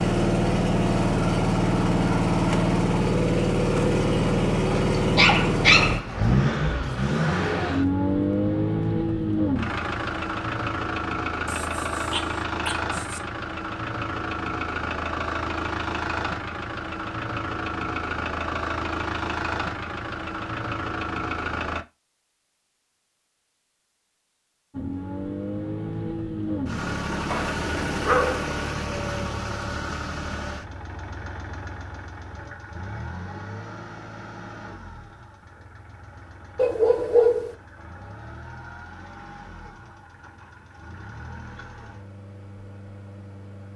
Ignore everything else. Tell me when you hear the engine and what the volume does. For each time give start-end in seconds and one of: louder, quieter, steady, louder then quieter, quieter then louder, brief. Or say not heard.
0.0-21.9 quieter
24.7-43.7 quieter.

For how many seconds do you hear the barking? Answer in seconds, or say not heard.
6 s.